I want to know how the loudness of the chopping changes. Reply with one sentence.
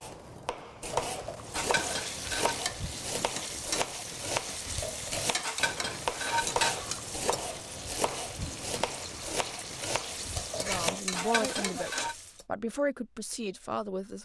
The volume of the chopping stays about the same.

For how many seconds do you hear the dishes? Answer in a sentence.
You can hear the dishes for 5 seconds altogether.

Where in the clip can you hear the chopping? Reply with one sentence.
The chopping can be heard from 0.0 to 11.0 s.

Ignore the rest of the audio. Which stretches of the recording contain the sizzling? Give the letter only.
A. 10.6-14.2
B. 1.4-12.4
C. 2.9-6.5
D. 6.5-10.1
B.